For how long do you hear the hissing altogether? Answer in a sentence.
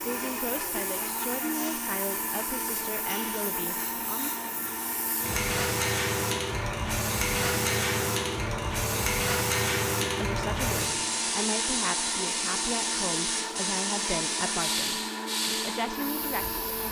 You can hear the hissing for 17 seconds altogether.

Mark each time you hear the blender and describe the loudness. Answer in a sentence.
The blender can be heard from 0.0 to 16.8 s, at a steady volume.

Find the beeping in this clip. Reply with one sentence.
The beeping can't be heard in this clip.